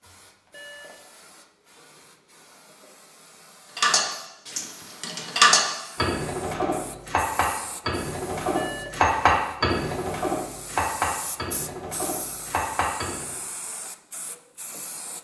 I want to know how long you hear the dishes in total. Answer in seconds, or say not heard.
10 s.